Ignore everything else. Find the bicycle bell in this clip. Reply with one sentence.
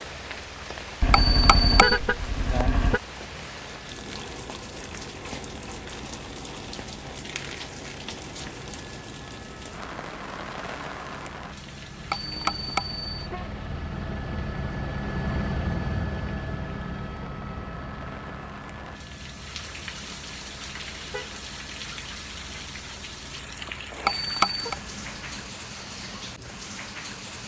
You can hear the bicycle bell from 1.1 to 2.0 s, from 12.1 to 13.1 s and from 24.1 to 24.8 s.